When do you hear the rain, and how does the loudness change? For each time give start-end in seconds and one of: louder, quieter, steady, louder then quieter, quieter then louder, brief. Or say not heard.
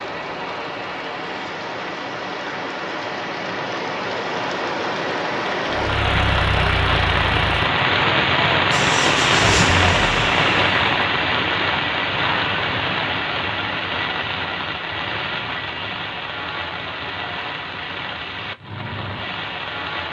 0.0-20.0 louder then quieter.